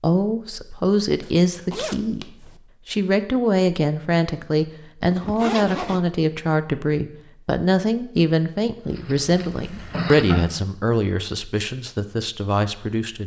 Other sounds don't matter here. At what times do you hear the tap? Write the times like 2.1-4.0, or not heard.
8.8-10.4.